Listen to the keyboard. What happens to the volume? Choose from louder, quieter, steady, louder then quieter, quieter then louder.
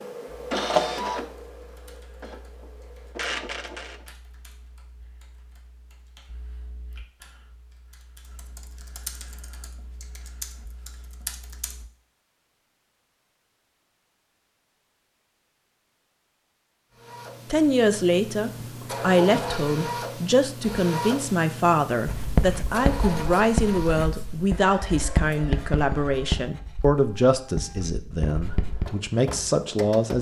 louder.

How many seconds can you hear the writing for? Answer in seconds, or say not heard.
7 s.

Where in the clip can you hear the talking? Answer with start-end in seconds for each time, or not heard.
17.5-30.1.